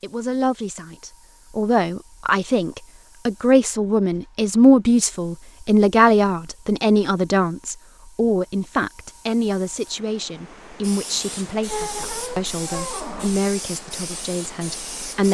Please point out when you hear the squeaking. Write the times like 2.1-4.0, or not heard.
11.7-13.4.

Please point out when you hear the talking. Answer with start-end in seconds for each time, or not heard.
0.0-15.2.